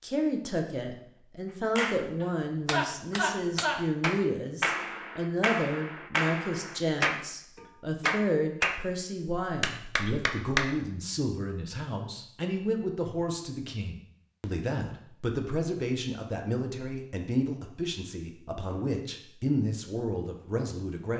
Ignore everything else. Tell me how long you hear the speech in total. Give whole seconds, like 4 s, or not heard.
21 s.